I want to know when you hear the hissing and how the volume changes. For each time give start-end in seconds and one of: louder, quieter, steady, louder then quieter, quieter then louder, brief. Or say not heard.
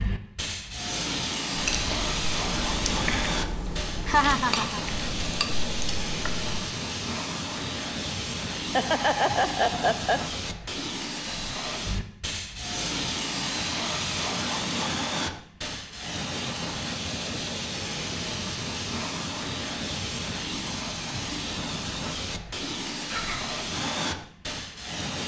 0.0-25.2 steady.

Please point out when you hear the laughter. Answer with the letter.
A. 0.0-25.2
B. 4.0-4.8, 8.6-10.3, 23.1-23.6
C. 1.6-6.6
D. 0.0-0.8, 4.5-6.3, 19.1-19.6
B.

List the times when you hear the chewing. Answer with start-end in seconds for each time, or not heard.
1.6-6.6.